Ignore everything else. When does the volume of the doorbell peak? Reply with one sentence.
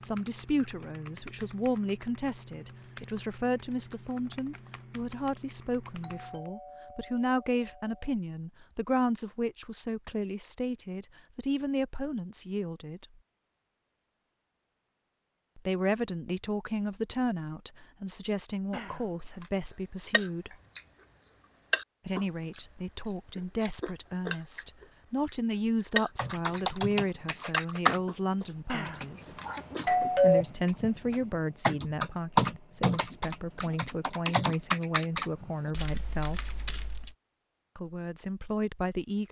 The loudest moment of the doorbell is at 30 seconds.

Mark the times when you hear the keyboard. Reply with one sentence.
The keyboard can be heard from 0.0 to 6.5 s and from 26.1 to 37.1 s.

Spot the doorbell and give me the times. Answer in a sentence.
You can hear the doorbell from 6.0 to 8.0 s, from 18.7 to 19.5 s and from 28.7 to 30.4 s.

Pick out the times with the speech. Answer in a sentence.
The speech can be heard from 0.0 to 13.1 s, from 15.6 to 20.6 s, from 22.1 to 29.4 s, from 30.2 to 36.5 s and from 37.8 to 39.2 s.